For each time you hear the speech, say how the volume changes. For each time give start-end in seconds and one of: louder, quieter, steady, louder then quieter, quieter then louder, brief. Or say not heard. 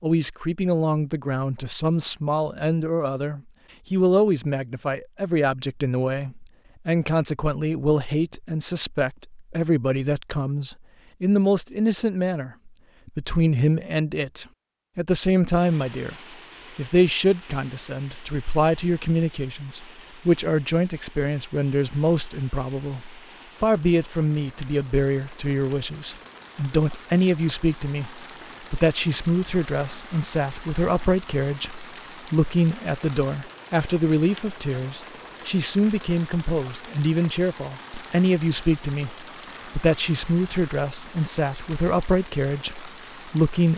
0.0-16.1 steady
16.8-43.7 steady.